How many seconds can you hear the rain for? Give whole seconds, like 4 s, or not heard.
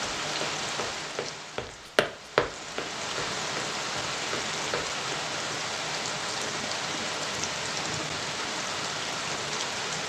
10 s.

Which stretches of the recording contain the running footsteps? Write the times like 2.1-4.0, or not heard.
0.0-5.5.